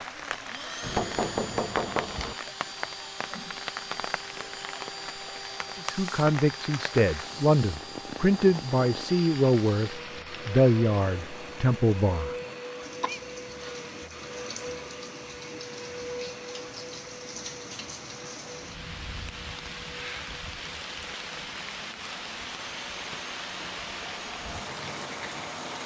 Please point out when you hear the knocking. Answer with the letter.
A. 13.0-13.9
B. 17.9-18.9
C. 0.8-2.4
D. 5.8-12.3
C.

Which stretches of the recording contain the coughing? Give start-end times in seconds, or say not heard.
13.0-13.9.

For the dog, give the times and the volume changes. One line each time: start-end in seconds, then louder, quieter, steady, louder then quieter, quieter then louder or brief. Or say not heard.
not heard.